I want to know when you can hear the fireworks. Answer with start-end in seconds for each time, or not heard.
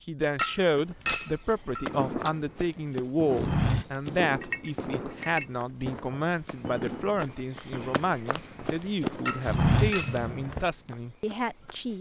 1.9-10.7.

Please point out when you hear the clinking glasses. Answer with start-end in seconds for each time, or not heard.
0.3-2.3, 4.4-5.5, 9.2-10.2.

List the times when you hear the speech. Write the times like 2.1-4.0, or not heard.
0.1-11.9.